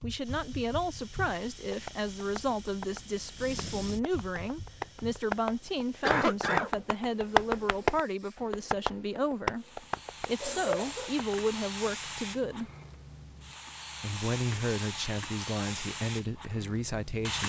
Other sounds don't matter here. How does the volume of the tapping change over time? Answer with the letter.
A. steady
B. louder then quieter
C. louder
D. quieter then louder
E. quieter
B.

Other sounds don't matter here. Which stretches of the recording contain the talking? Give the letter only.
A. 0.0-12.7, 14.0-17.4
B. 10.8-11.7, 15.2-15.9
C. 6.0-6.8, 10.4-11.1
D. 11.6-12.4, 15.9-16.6
A.